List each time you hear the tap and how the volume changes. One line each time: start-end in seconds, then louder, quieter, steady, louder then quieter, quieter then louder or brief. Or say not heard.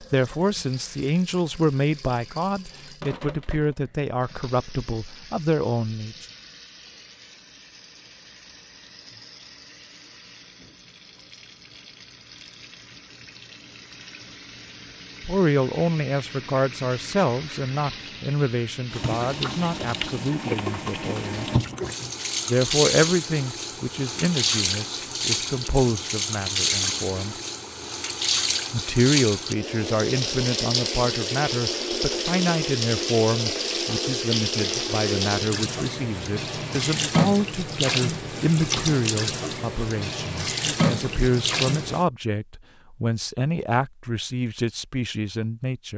0.0-42.0 louder.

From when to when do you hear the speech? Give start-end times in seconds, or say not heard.
0.0-6.2, 15.2-21.5, 22.4-27.4, 28.7-45.9.